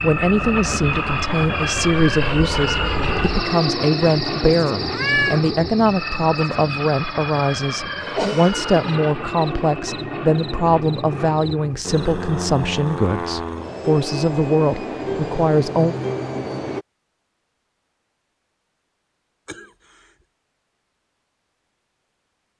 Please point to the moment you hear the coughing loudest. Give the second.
8 s.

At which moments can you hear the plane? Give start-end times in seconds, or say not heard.
0.0-16.9.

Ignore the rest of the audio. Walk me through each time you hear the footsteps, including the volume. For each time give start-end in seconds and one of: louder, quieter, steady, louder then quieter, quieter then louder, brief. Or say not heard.
not heard.